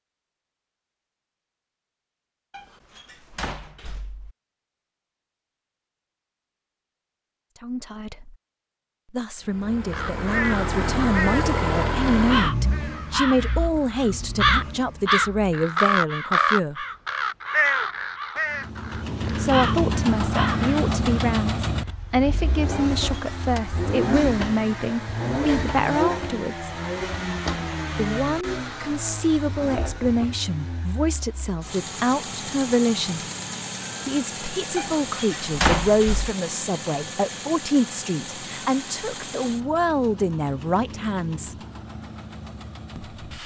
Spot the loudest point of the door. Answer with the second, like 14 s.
36 s.